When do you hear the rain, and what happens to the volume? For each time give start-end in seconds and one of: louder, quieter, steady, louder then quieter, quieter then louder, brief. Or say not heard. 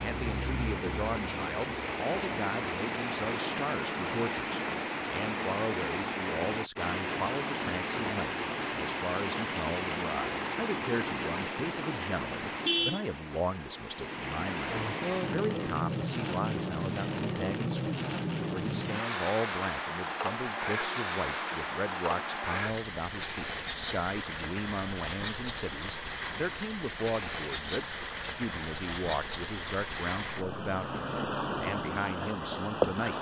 0.0-33.1 steady.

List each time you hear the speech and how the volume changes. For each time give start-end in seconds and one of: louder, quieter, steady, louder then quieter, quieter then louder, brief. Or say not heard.
0.0-33.1 steady.